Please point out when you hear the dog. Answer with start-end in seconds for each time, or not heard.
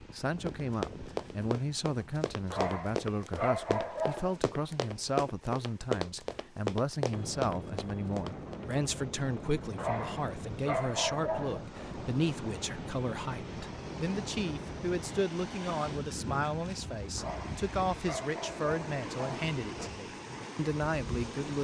2.5-4.3, 9.8-11.7, 17.1-19.9.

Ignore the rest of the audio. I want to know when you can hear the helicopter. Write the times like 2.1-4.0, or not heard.
7.1-15.2.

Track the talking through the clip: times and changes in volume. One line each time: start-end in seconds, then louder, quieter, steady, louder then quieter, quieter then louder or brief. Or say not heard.
0.0-21.5 steady.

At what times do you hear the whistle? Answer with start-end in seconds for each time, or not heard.
not heard.